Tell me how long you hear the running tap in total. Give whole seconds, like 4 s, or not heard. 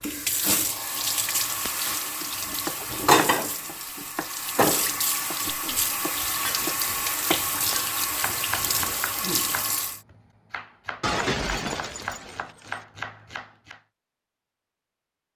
10 s.